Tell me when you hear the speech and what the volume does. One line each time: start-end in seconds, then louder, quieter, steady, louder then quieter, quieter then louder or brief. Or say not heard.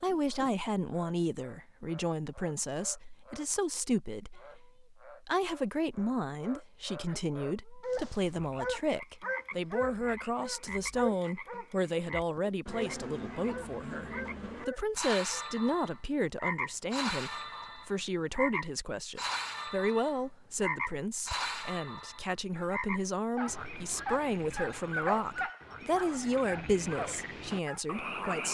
0.0-28.4 steady.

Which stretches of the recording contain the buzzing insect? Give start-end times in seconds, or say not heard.
not heard.